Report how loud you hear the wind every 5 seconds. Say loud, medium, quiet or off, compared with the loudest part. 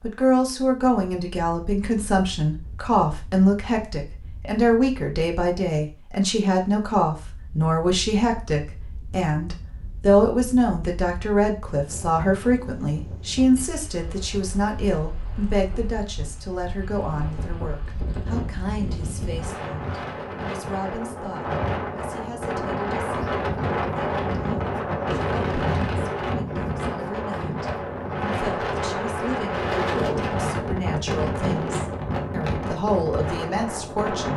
quiet, quiet, quiet, medium, loud, loud, loud.